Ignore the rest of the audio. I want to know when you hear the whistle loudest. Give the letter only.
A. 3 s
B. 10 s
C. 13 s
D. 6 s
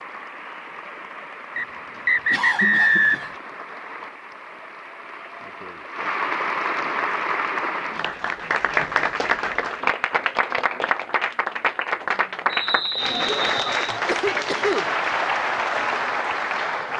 A.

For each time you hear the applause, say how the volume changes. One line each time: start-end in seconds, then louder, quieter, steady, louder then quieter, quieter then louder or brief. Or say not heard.
0.0-16.9 louder.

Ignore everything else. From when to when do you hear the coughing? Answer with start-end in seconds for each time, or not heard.
2.3-3.3, 14.1-14.8.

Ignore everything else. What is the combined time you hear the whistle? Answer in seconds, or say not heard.
3 s.